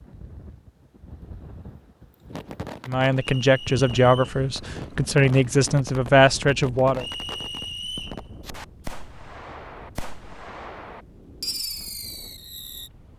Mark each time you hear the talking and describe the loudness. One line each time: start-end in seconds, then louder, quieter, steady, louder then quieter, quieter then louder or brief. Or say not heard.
2.9-7.0 steady.